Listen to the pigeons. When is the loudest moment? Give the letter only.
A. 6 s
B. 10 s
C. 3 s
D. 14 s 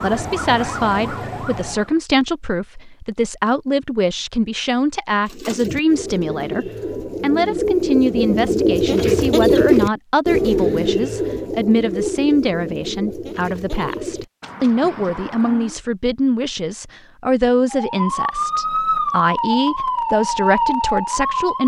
B.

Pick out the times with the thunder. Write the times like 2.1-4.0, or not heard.
not heard.